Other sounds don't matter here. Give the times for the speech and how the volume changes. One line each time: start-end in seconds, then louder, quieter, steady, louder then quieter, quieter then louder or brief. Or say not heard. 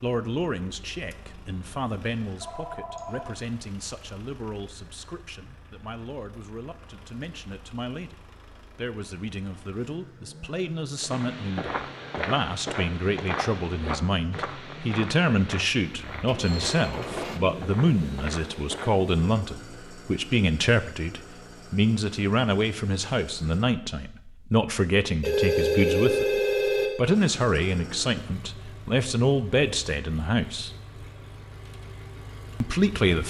0.0-30.7 louder
32.6-33.2 brief.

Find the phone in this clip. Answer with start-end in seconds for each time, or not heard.
2.4-3.4, 15.9-16.8, 25.2-26.9.